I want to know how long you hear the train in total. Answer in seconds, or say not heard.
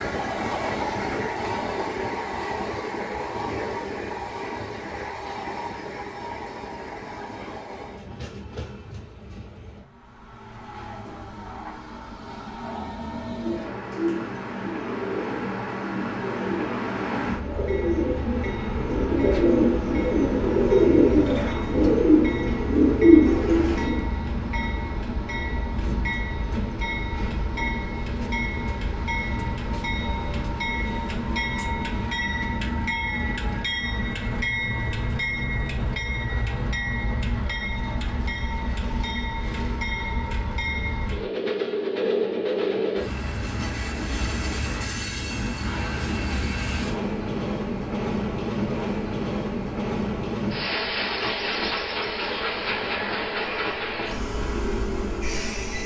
56 s.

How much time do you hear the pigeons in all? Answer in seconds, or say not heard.
11 s.